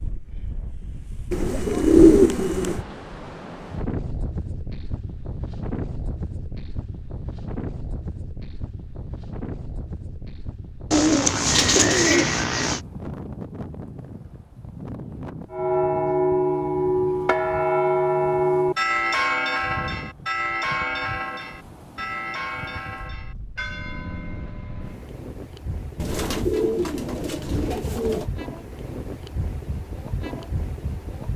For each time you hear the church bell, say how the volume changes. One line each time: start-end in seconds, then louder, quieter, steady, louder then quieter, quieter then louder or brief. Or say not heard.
15.5-25.1 quieter.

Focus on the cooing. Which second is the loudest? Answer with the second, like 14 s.
2 s.